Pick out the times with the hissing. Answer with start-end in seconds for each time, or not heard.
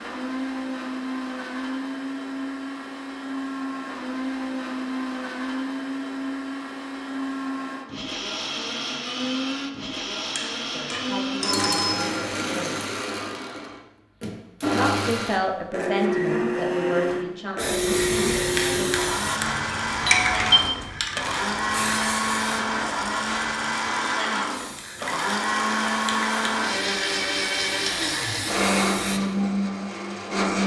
17.6-29.2.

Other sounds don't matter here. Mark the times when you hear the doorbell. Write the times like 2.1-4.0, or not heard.
10.3-12.0, 20.1-20.8.